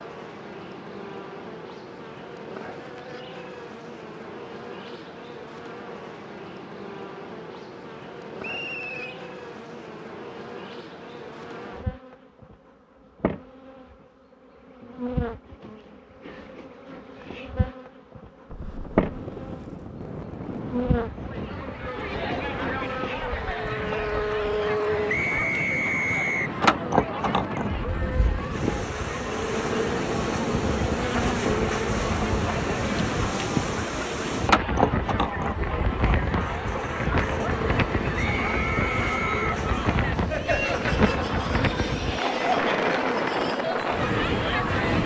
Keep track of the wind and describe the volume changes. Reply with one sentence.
The volume of the wind goes up.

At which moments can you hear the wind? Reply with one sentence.
The wind can be heard from 18.5 to 45.0 s.